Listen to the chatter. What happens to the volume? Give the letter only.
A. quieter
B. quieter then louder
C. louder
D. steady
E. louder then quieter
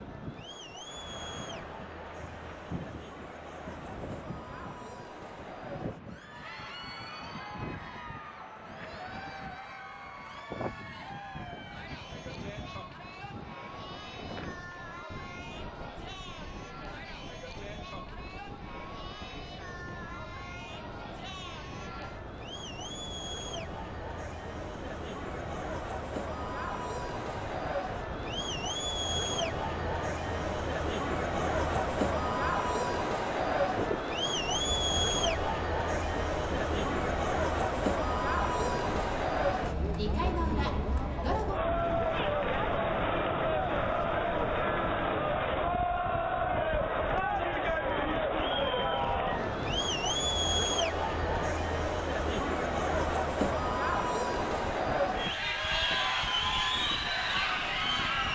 C.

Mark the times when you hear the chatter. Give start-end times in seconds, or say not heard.
0.0-58.2.